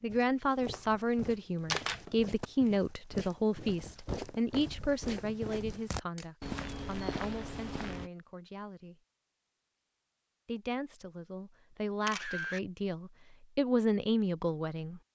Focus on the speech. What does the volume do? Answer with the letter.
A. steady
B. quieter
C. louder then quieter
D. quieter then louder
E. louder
D.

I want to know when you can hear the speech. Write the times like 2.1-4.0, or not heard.
0.0-9.0, 10.4-15.0.